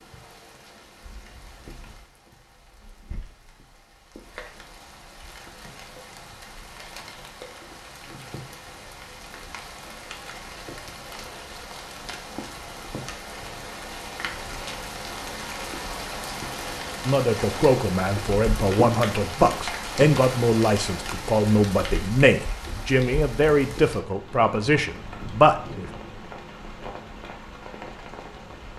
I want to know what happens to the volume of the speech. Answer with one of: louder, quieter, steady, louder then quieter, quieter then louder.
steady.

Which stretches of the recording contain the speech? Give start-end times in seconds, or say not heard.
17.1-25.9.